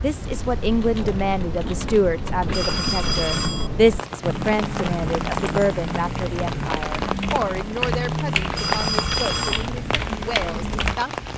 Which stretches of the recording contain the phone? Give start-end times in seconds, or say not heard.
2.5-3.7, 8.5-9.7.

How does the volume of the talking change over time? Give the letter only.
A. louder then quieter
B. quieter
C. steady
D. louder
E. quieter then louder
B.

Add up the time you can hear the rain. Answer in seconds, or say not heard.
11 s.